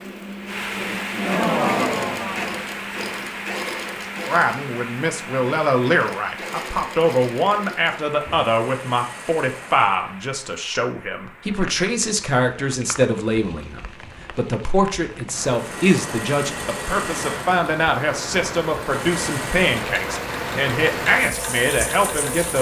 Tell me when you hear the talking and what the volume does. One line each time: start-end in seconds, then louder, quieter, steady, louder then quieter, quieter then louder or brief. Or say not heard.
4.2-22.5 steady.